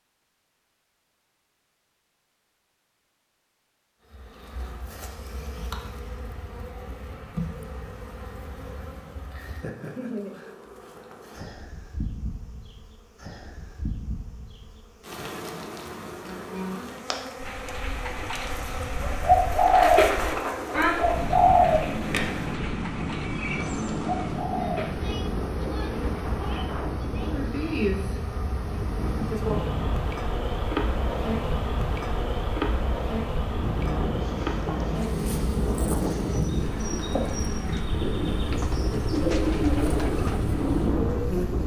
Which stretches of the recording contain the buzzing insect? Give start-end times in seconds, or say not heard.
4.1-41.6.